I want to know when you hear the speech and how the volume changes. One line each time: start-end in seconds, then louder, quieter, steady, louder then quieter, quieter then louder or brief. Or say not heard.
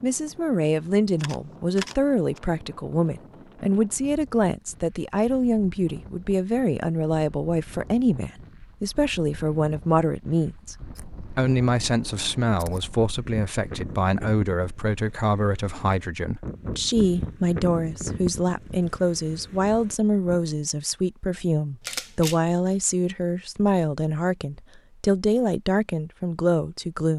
0.0-27.1 steady.